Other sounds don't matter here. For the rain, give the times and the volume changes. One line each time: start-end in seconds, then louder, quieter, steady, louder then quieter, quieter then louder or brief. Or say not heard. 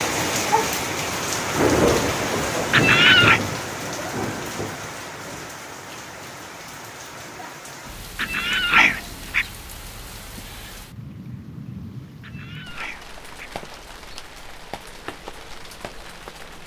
0.0-16.6 quieter.